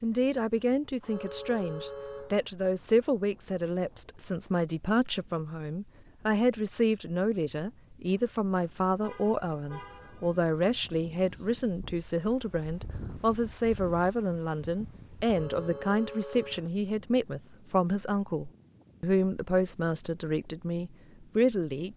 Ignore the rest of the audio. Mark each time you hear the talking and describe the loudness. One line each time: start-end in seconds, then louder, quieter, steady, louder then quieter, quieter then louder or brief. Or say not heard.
0.0-21.9 steady.